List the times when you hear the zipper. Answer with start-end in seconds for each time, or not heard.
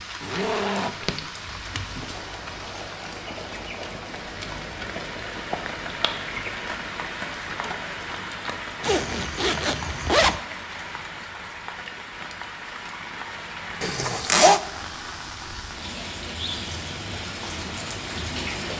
0.2-1.1, 8.8-10.4, 13.8-14.6.